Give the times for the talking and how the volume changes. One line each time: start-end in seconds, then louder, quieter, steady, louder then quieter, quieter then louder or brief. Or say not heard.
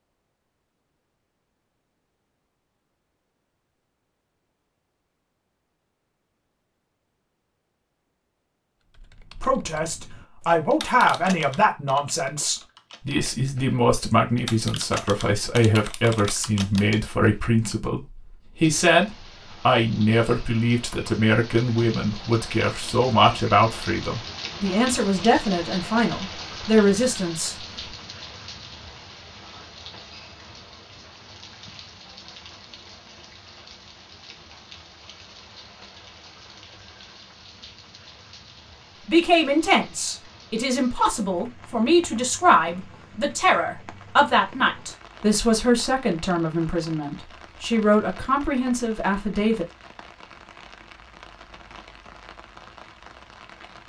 9.4-27.6 steady
39.0-49.6 steady.